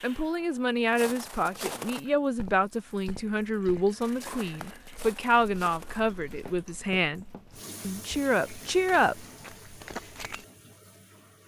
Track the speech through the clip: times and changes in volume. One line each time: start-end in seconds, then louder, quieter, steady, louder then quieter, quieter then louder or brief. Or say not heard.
0.0-9.2 steady.